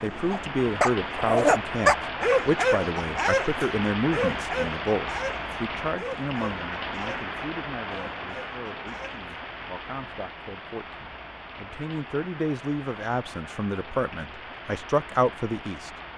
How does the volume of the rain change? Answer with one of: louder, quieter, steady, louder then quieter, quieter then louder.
quieter.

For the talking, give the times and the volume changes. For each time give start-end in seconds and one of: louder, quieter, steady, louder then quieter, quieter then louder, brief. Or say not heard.
0.0-16.1 quieter then louder.